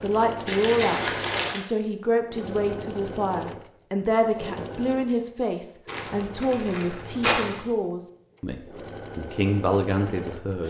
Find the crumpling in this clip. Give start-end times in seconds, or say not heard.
0.5-1.6, 5.8-7.6.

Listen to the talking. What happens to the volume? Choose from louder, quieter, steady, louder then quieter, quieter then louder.
steady.